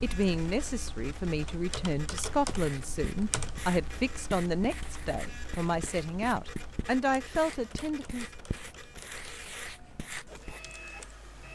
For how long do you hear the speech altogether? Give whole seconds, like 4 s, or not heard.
8 s.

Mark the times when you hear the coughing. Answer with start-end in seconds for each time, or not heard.
not heard.